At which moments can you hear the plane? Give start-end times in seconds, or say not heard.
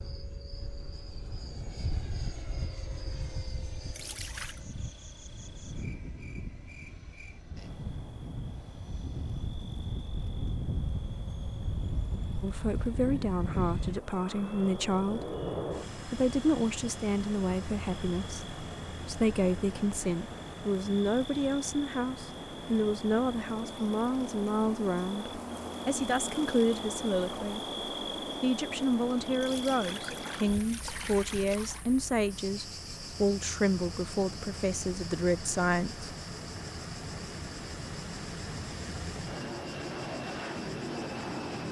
0.0-41.6.